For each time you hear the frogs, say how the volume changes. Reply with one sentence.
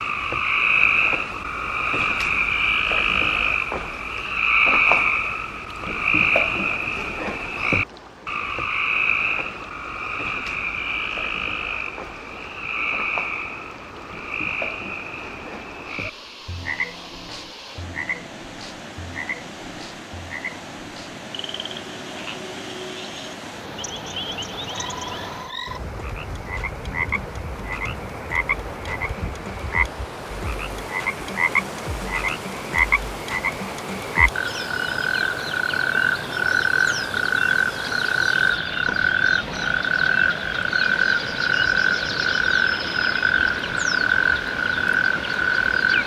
You can hear the frogs from 0.0 to 46.0 s, getting quieter then louder.